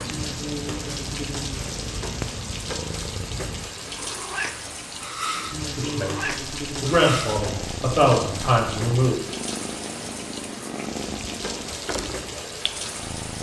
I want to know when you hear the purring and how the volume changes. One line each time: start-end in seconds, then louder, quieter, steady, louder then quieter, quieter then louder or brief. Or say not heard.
0.0-13.3 steady.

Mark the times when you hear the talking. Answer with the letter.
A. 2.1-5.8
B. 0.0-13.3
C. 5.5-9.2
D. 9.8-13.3
C.